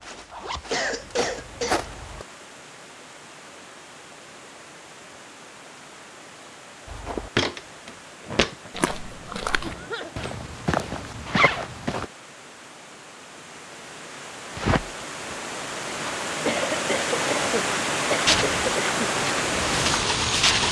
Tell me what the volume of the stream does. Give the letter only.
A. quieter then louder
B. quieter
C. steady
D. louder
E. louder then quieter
D.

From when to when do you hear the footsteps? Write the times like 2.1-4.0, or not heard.
0.0-2.2, 6.8-12.1, 18.2-20.6.